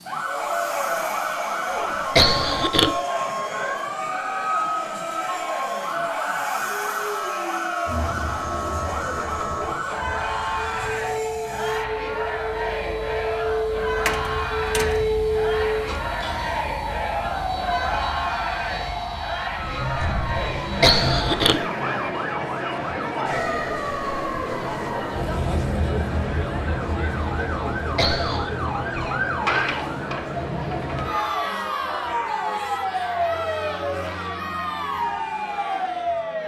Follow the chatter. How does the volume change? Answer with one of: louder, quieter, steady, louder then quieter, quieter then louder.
steady.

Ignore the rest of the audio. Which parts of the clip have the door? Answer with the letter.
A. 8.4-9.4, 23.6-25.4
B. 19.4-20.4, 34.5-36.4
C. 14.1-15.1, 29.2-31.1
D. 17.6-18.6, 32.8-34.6
C.